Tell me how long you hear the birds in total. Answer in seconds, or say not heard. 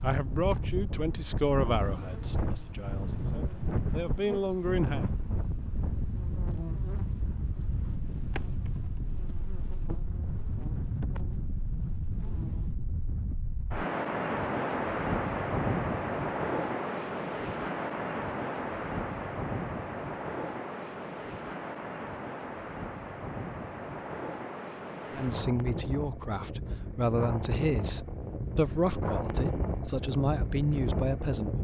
not heard.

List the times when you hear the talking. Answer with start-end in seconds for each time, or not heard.
0.0-5.1, 25.1-31.5.